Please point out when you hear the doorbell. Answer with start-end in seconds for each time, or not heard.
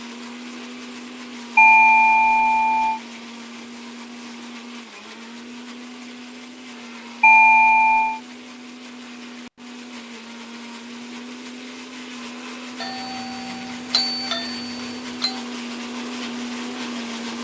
1.6-3.0, 7.2-8.2, 12.8-15.3.